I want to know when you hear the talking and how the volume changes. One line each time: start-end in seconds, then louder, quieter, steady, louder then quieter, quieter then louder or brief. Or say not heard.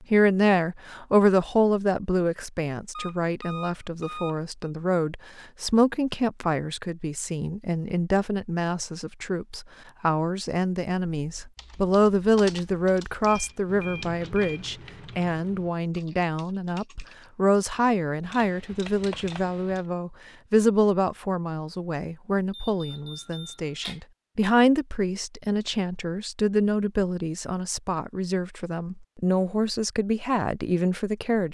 0.1-31.4 steady.